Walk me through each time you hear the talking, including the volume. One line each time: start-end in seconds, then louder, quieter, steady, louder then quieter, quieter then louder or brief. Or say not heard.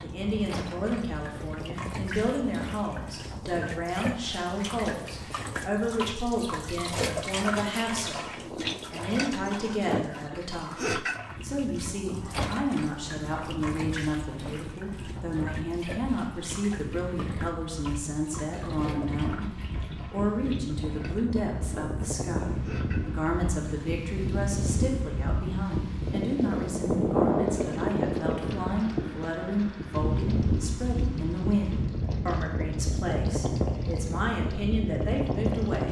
0.0-35.8 steady.